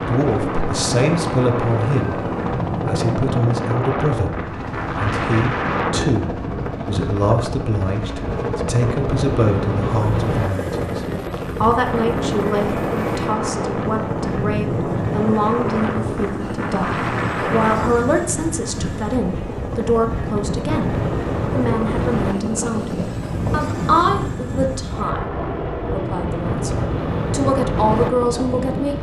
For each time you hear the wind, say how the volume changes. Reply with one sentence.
You can hear the wind from 0.0 to 28.9 s, at a steady volume.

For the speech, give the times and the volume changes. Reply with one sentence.
You can hear the speech from 0.0 to 28.9 s, at a steady volume.